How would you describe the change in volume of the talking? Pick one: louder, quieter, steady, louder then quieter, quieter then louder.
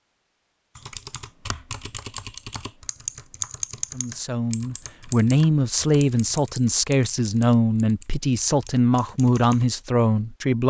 steady.